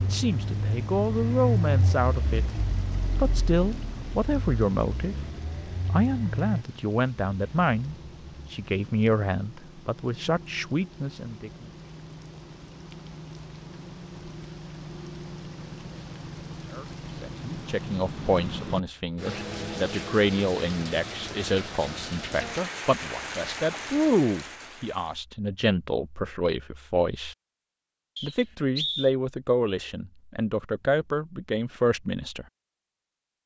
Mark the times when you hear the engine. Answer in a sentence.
The engine can be heard from 0.0 to 6.7 s.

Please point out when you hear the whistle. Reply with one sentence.
The whistle can be heard from 28.1 to 29.1 s.